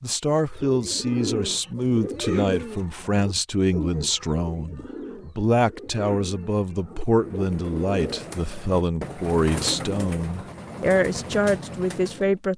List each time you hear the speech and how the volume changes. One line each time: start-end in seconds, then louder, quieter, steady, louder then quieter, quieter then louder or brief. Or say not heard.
0.0-12.5 steady.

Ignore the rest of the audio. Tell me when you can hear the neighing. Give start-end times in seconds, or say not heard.
not heard.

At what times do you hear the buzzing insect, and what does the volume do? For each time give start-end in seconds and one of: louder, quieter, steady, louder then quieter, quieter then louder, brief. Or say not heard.
not heard.